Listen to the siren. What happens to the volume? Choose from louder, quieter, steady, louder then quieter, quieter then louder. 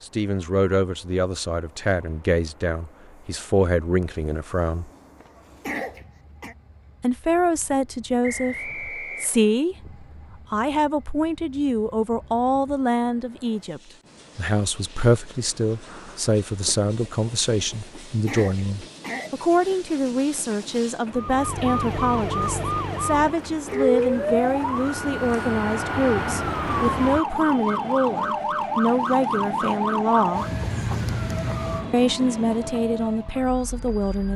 quieter.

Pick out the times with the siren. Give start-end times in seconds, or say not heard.
21.1-34.3.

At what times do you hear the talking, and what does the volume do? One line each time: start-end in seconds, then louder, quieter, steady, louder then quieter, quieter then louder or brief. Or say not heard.
0.0-4.9 steady
7.0-30.4 steady
31.9-34.3 brief.